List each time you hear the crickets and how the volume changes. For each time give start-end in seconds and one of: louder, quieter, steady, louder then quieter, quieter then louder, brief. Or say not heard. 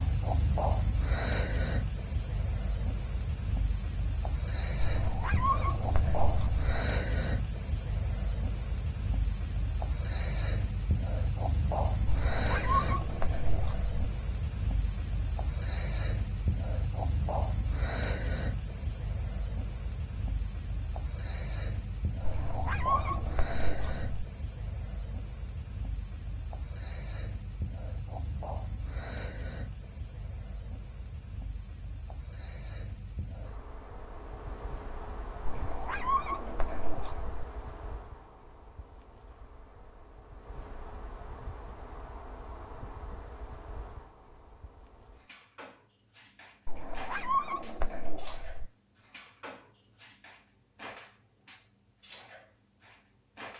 0.0-53.5 quieter.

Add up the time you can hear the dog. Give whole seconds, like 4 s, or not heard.
10 s.